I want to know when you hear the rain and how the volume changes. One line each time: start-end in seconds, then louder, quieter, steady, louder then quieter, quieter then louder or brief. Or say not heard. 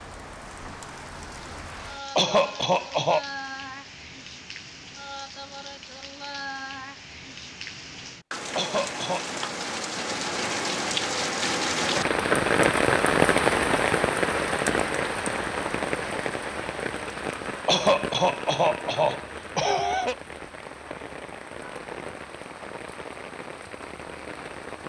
0.0-24.8 louder then quieter.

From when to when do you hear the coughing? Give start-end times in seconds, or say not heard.
2.1-3.2, 8.6-9.4, 17.6-20.1.